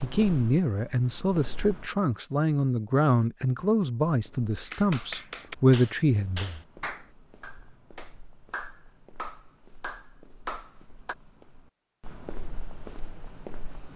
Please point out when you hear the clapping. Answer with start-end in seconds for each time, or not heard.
4.7-11.2.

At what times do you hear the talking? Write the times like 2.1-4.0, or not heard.
0.0-6.6.